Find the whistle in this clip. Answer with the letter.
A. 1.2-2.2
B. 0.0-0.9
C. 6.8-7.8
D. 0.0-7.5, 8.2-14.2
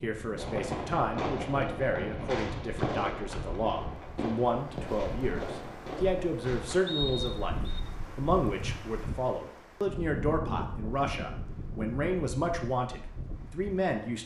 C.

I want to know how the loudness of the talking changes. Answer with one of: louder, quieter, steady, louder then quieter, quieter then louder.
steady.